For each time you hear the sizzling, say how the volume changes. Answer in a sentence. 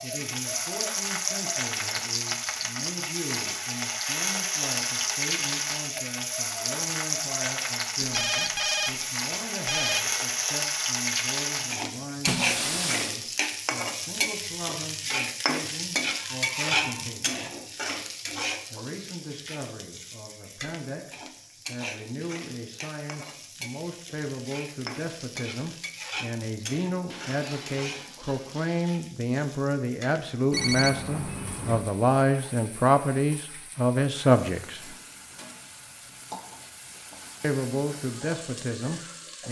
You can hear the sizzling from 0.0 to 39.4 s, getting quieter.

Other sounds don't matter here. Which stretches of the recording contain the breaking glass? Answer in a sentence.
The breaking glass can be heard from 12.2 to 13.2 s and from 27.1 to 28.9 s.